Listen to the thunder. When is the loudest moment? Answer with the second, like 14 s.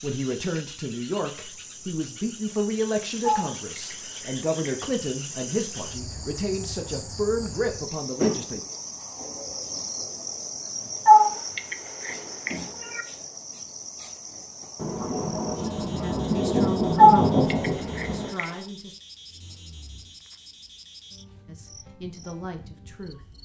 17 s.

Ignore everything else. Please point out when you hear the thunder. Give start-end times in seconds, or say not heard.
14.8-18.3.